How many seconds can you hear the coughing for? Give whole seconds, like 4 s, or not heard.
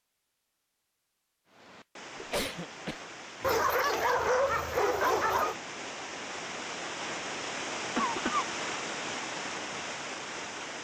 2 s.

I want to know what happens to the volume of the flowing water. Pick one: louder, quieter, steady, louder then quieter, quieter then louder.
louder.